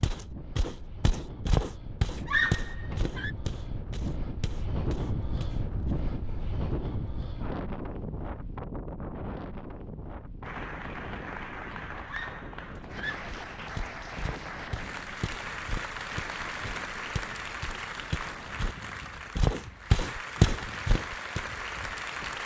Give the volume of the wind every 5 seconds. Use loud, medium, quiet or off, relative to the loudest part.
loud, loud, medium, quiet, quiet.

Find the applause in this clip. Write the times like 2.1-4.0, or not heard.
10.4-22.4.